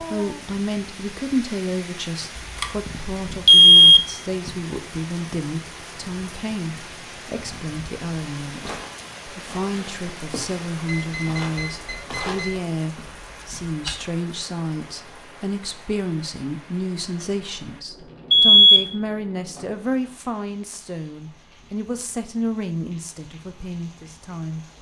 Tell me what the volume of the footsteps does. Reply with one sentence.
The loudness of the footsteps goes up, then down.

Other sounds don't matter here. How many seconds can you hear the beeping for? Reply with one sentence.
The beeping can be heard for 3 seconds in total.